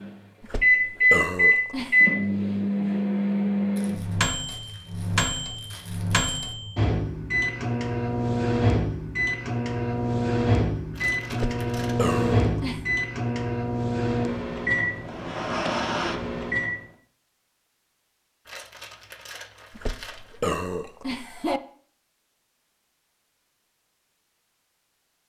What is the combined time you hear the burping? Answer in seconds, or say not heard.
5 s.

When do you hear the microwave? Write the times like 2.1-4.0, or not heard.
0.0-16.8.